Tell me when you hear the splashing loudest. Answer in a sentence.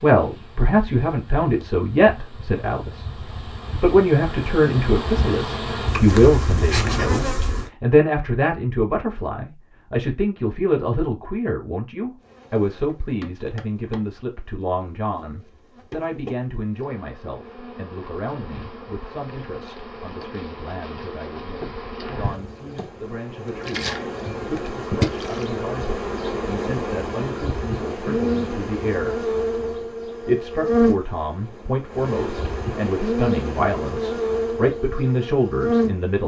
The volume of the splashing peaks at 25 seconds.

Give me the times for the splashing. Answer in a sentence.
You can hear the splashing from 23.6 to 25.4 s.